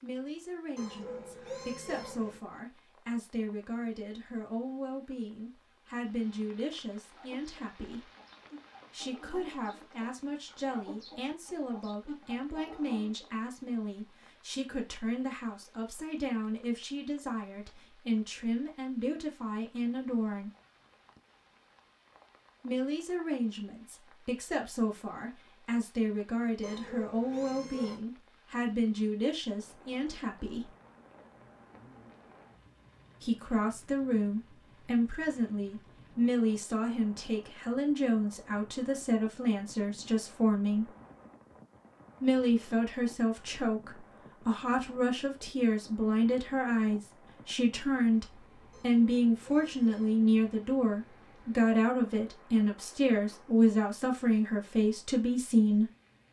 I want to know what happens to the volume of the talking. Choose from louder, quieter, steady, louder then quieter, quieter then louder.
louder.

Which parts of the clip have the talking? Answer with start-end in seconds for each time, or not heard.
0.0-8.1, 8.9-20.5, 22.6-30.7, 33.2-40.9, 42.2-55.9.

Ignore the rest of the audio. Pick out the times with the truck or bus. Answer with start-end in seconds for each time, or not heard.
not heard.